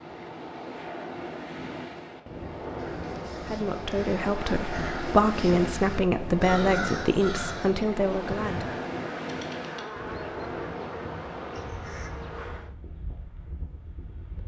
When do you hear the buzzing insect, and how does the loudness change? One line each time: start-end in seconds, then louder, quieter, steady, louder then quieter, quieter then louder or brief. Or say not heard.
8.0-12.8 steady.